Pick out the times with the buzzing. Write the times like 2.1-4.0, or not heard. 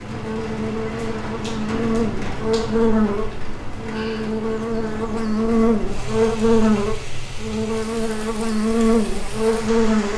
0.0-10.1.